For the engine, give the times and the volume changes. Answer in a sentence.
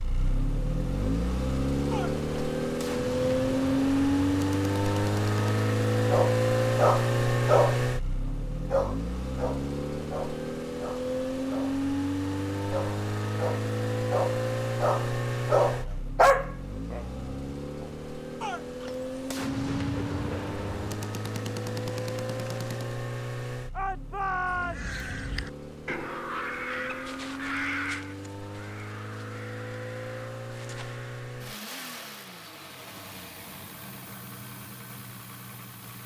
You can hear the engine from 0.0 to 36.0 s, getting quieter.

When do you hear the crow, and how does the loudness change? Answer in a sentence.
The crow can be heard from 24.5 to 31.3 s, getting quieter.